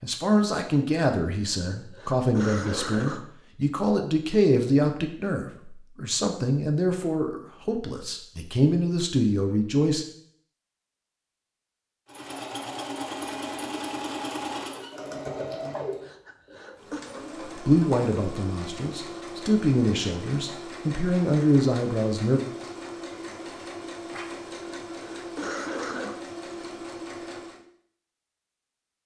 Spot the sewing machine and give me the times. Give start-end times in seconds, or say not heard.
12.1-27.6.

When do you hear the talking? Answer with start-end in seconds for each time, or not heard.
0.0-10.1, 17.6-22.4.